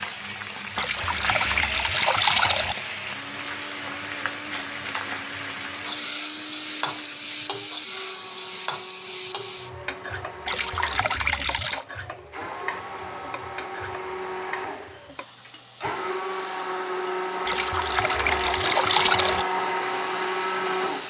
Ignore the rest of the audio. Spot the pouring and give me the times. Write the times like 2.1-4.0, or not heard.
0.8-2.8, 10.4-11.8, 17.4-19.4.